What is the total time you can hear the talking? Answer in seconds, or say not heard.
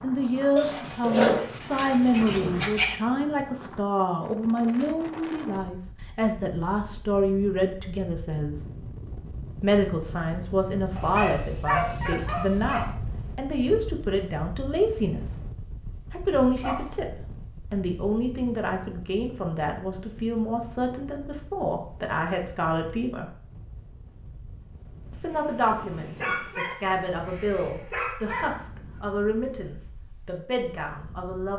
28 s.